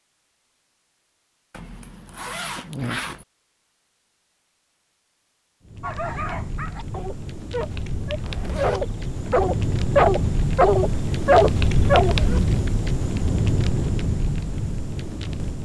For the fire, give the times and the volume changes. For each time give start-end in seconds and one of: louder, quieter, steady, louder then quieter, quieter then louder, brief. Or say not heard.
5.7-15.6 louder.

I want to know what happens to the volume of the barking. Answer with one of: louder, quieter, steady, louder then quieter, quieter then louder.
louder.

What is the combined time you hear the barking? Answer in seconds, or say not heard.
6 s.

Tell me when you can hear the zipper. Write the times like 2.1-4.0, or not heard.
1.5-3.2, 8.2-8.8, 12.0-12.4.